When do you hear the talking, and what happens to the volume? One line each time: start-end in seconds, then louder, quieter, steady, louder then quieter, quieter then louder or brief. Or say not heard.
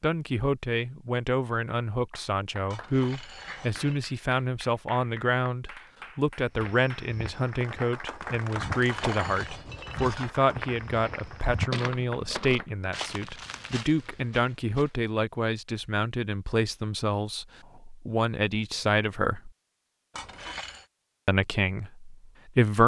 0.0-19.5 steady
21.2-22.8 brief.